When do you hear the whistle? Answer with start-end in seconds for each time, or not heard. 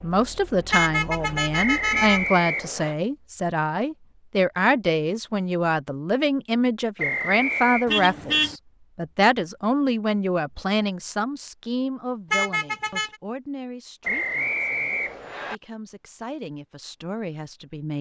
1.6-3.0, 7.0-7.8, 14.0-15.6.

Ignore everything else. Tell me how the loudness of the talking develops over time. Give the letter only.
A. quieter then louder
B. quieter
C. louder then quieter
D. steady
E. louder
B.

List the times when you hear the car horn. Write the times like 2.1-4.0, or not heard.
0.7-2.2, 7.8-8.6, 12.3-13.2.